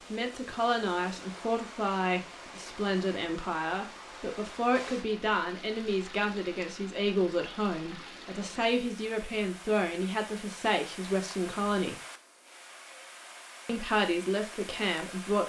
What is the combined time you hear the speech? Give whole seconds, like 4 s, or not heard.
14 s.